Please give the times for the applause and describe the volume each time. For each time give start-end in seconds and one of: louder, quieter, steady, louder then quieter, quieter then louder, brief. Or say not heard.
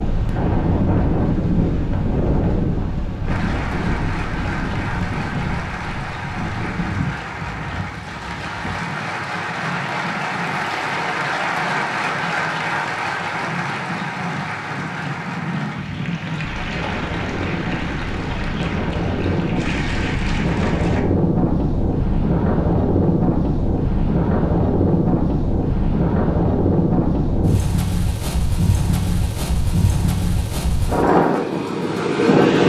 3.2-21.1 louder then quieter.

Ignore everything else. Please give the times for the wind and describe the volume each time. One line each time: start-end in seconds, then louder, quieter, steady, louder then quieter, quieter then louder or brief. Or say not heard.
0.0-32.6 quieter then louder.